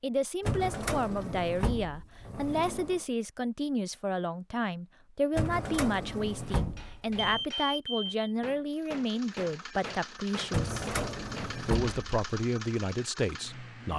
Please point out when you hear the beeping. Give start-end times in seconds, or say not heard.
7.2-8.2.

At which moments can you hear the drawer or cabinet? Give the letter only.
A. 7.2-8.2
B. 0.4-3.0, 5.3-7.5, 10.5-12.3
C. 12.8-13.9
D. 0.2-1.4
B.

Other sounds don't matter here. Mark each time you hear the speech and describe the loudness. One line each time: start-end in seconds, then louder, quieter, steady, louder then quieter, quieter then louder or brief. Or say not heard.
0.0-10.8 steady
11.7-13.9 brief.